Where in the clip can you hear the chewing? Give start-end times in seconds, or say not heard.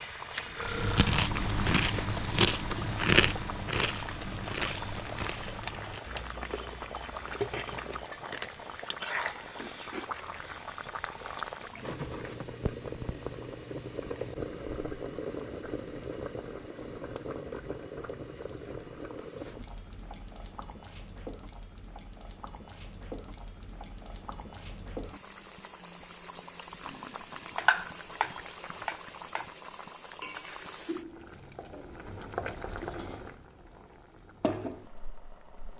0.7-10.2.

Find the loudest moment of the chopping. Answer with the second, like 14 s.
28 s.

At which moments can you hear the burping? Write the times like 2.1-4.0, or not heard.
0.4-1.1, 26.8-27.5.